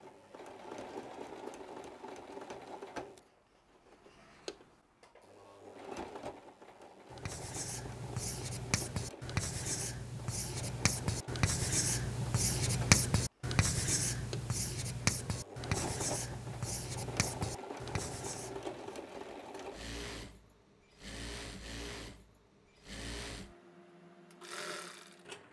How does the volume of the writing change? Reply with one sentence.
The loudness of the writing goes up, then down.